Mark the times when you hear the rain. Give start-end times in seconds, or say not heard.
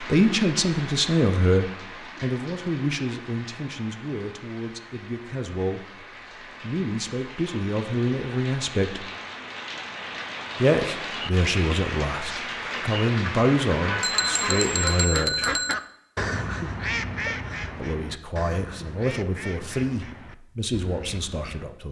0.0-15.1.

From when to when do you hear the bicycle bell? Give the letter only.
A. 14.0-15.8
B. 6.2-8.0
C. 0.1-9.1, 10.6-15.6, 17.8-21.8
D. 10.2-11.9
A.